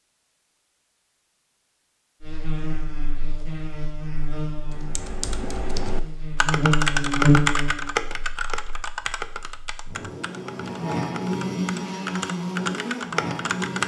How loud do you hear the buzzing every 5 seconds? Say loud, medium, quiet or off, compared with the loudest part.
medium, loud, loud.